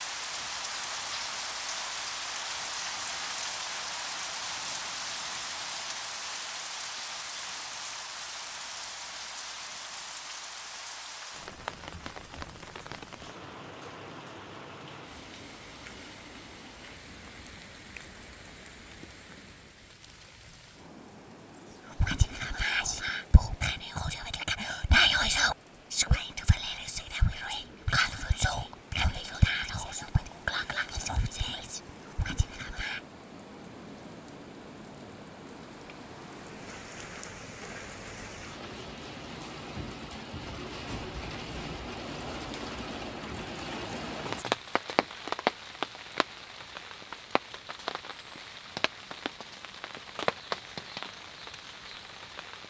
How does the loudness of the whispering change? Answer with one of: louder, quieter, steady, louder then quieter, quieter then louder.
louder then quieter.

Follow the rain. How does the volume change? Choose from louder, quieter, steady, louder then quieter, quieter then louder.
quieter then louder.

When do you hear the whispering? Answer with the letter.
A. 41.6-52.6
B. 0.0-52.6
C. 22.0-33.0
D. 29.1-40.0
C.